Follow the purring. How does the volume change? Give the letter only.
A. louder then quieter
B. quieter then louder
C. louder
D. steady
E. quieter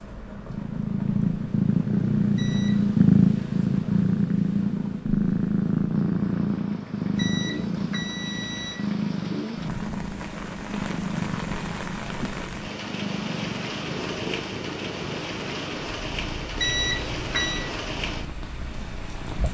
E.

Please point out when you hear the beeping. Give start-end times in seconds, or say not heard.
2.4-3.0, 7.2-8.8, 16.6-17.7.